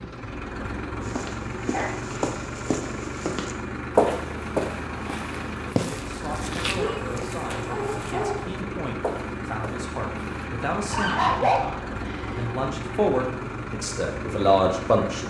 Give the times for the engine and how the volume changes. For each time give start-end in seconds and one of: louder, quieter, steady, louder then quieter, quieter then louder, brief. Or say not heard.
0.0-15.2 steady.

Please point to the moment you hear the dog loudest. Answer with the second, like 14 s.
11 s.